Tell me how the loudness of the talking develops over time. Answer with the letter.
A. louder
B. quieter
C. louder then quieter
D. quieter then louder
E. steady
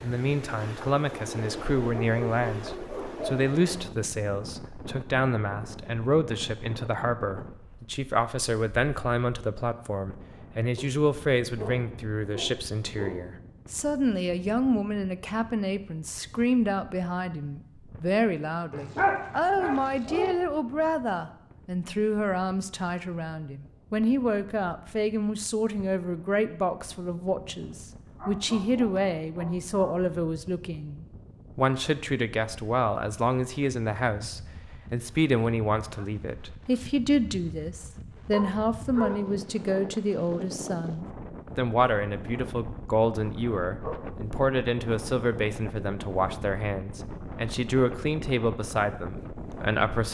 E.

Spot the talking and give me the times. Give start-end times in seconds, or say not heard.
0.0-50.1.